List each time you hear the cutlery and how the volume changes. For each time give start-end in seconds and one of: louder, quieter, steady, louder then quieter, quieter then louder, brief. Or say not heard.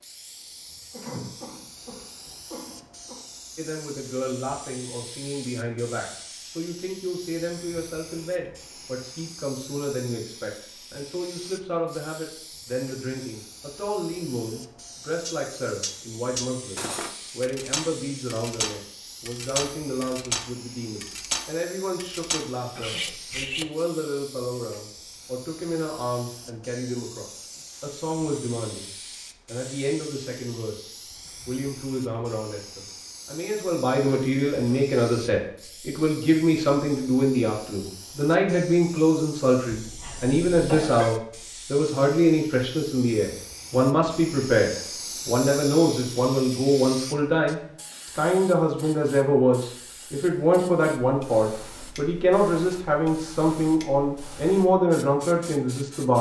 15.2-23.6 steady.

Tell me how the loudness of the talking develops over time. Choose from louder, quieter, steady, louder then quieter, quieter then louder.
louder.